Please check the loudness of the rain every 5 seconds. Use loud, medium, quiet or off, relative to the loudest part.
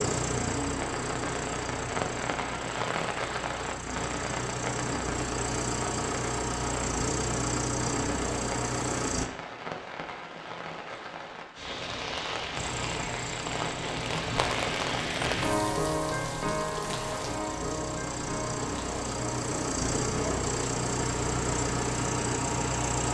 loud, medium, loud, loud, medium.